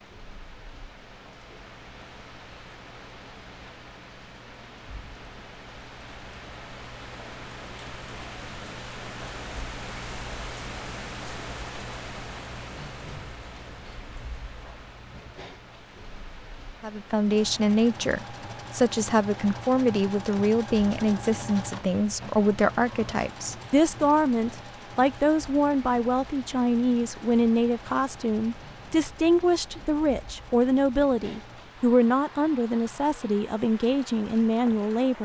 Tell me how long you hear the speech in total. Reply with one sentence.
You can hear the speech for 18 seconds altogether.